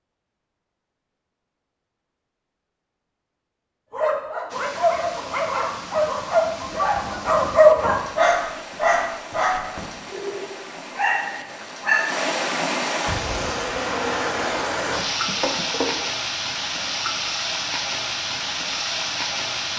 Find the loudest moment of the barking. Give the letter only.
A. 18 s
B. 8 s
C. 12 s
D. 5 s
B.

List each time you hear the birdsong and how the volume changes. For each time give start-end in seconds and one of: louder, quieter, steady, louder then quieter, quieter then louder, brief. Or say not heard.
not heard.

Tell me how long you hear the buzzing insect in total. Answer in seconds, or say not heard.
3 s.